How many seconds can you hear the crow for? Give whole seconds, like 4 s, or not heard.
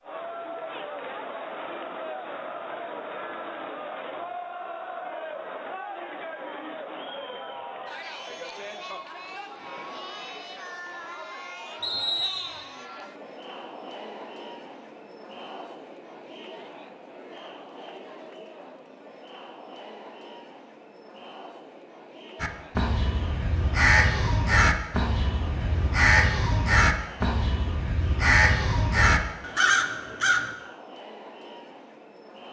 8 s.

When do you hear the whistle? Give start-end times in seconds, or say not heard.
11.8-12.7.